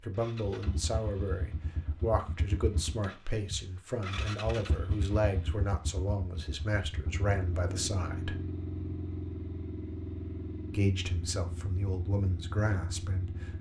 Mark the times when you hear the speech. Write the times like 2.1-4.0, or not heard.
0.0-8.3, 10.7-13.5.